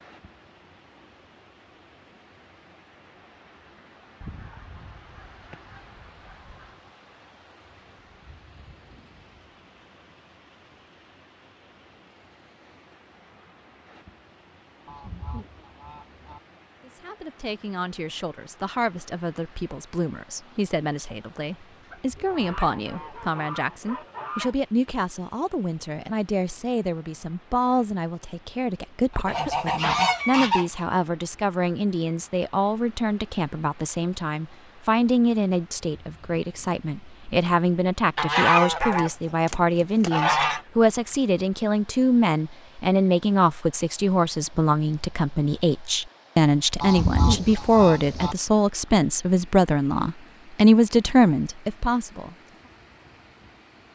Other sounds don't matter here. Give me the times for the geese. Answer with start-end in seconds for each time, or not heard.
4.2-6.8, 14.8-16.4, 21.9-24.6, 29.1-30.9, 38.1-40.6, 46.8-48.4.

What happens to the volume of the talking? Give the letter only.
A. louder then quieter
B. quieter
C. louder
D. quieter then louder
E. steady
C.